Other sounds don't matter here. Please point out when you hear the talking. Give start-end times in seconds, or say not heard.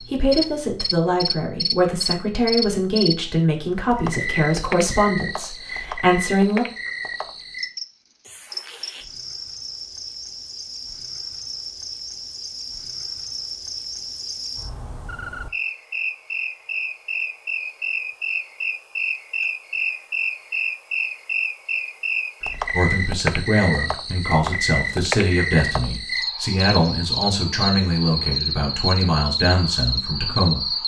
0.1-6.7, 22.7-30.6.